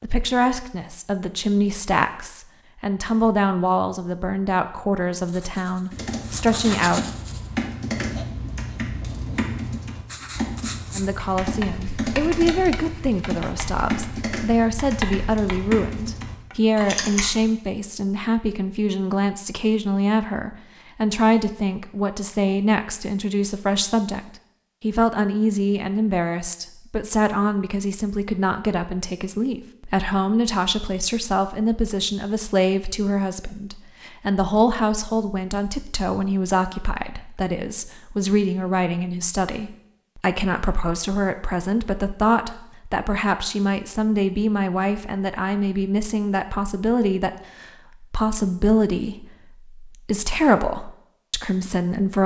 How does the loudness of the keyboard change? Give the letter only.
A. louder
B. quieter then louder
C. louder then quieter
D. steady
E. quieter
D.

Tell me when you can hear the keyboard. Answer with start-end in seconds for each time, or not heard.
5.9-17.5.